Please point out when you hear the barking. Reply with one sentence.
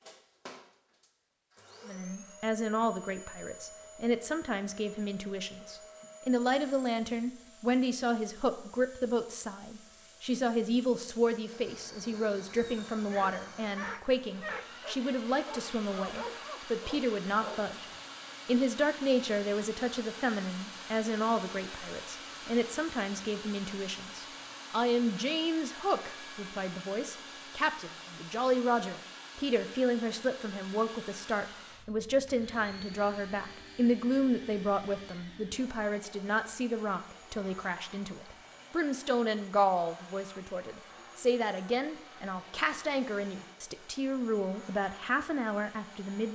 The barking can be heard from 13.1 to 18.4 s.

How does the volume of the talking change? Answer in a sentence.
The loudness of the talking stays about the same.